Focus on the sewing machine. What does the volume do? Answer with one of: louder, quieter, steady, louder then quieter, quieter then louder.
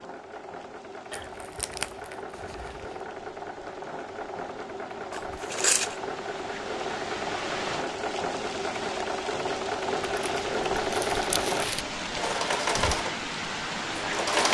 louder.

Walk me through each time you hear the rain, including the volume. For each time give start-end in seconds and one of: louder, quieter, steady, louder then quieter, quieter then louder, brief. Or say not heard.
0.0-14.4 louder.